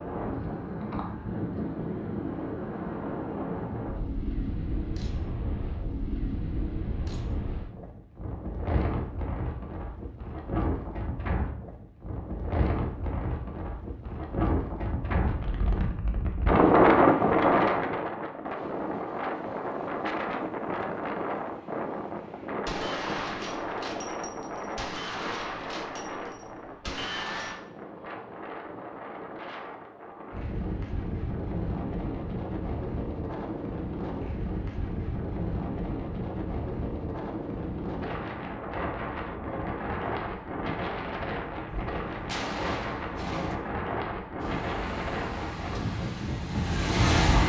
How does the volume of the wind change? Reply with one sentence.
The volume of the wind goes up, then down.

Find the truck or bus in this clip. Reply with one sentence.
The truck or bus can be heard from 44.4 to 47.4 s.